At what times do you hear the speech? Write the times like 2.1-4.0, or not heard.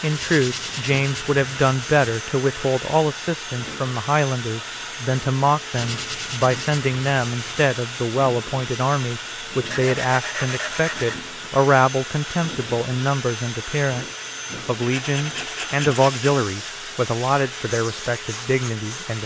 0.0-14.1, 14.7-19.2.